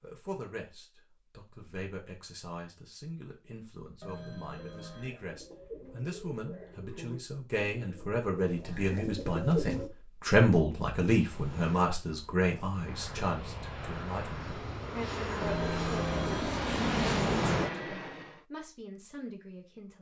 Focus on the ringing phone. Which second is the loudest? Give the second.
16 s.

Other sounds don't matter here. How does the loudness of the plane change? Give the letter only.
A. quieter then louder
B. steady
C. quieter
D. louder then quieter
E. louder
E.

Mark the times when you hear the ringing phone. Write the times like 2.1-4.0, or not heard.
4.0-5.1, 15.4-16.5.